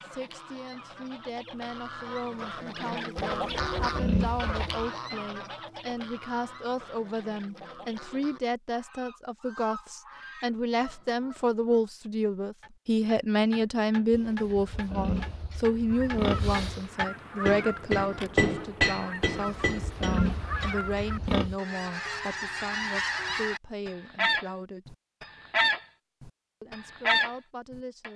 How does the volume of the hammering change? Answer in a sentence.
The loudness of the hammering goes up, then down.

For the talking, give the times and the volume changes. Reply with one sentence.
The talking can be heard from 0.0 to 24.9 s, getting louder then quieter; and briefly from 26.6 to 28.1 s.